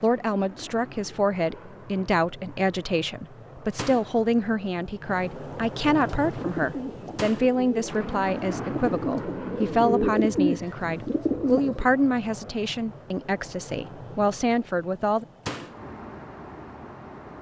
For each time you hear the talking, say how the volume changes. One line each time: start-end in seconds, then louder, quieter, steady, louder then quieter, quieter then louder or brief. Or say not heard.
0.0-15.2 steady.